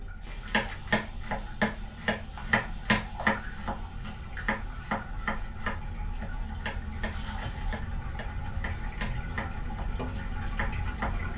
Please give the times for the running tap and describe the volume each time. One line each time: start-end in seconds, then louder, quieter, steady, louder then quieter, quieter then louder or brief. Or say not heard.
0.0-11.3 louder.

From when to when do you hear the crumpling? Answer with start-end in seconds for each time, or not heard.
0.2-0.8, 7.1-7.8.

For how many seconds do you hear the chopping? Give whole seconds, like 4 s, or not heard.
11 s.